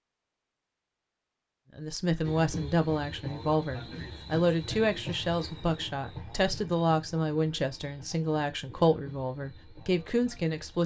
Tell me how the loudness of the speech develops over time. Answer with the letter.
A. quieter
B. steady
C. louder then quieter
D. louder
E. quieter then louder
B.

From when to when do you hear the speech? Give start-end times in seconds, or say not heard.
1.8-10.8.